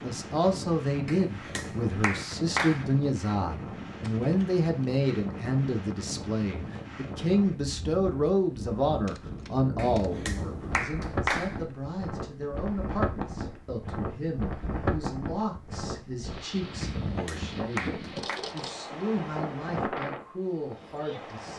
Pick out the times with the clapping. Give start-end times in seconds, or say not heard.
1.1-2.9, 9.8-11.6, 16.8-18.4.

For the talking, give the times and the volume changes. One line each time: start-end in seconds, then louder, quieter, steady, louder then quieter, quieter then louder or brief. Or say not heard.
0.0-21.5 quieter.